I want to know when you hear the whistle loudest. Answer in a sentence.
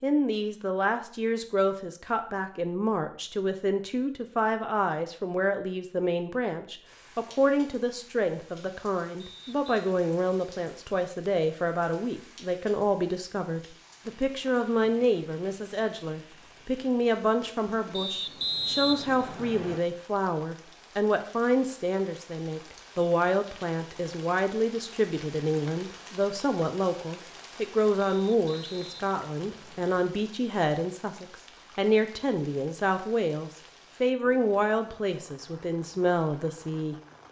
The volume of the whistle peaks at 19 seconds.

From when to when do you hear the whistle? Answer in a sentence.
The whistle can be heard from 9.2 to 9.9 s, from 17.9 to 19.8 s and from 28.0 to 29.9 s.